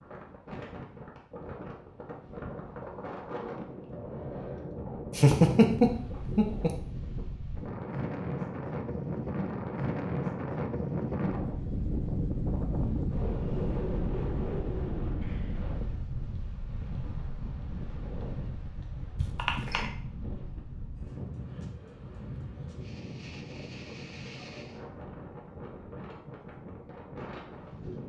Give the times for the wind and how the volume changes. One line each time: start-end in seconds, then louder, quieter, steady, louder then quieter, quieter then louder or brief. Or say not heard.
0.0-28.0 louder then quieter.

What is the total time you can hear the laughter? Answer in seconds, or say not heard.
2 s.